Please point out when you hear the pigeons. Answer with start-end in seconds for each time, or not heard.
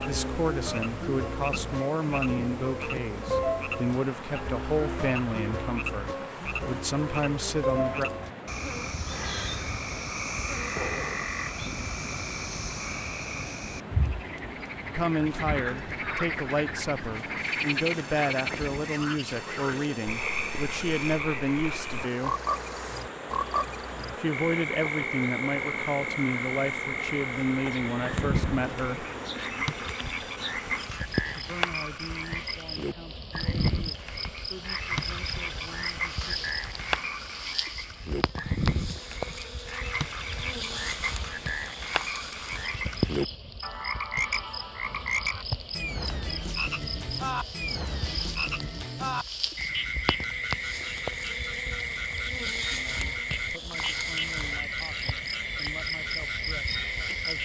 not heard.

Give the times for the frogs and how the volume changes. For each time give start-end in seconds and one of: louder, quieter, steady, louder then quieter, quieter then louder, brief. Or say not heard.
0.0-57.4 steady.